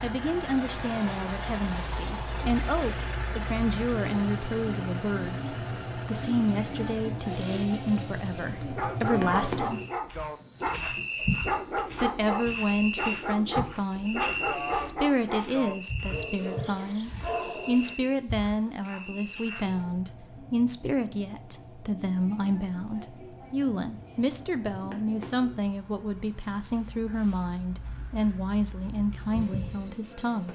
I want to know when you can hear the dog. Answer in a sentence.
You can hear the dog from 8.6 to 18.0 s.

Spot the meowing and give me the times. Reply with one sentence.
The meowing can't be heard in this clip.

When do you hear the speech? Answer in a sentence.
The speech can be heard from 0.0 to 9.8 s and from 12.0 to 30.4 s.